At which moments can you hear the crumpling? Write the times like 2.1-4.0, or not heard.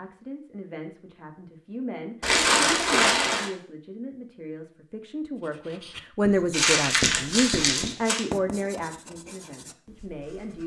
2.2-3.5, 6.5-8.2.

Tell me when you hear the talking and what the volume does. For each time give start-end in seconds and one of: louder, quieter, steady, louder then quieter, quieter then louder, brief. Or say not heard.
0.0-10.6 louder then quieter.